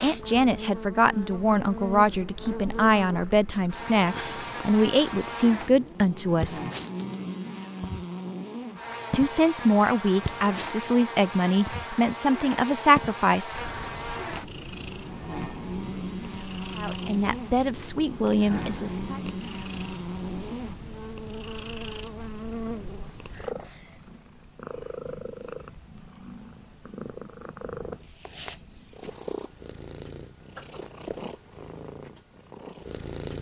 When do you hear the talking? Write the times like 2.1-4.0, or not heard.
0.0-6.6, 9.1-13.7, 16.8-19.2.